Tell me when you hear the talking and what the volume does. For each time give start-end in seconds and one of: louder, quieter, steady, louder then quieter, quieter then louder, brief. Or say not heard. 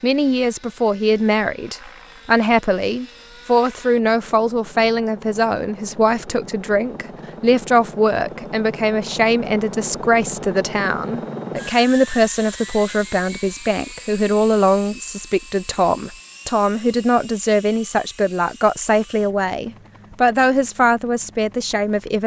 0.0-22.2 steady.